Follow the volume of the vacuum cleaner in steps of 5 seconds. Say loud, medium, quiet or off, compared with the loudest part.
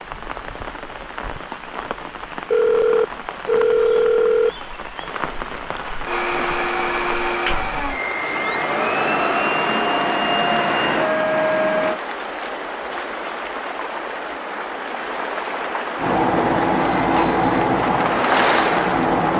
off, loud, loud, loud.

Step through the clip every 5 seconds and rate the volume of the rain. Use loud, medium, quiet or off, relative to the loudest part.
medium, medium, medium, loud.